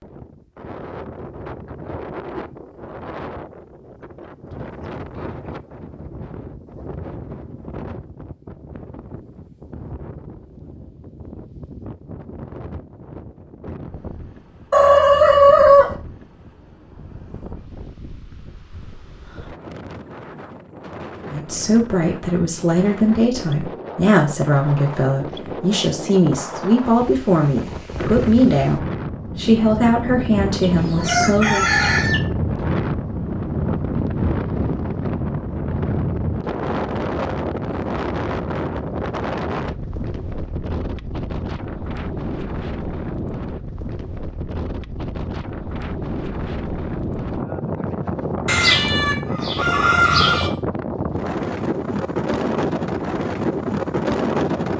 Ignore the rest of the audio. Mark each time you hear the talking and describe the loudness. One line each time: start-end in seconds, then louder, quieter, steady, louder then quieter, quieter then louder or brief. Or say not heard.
21.2-31.6 steady.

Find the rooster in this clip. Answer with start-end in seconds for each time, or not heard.
14.7-15.9, 30.6-32.2, 48.5-50.5.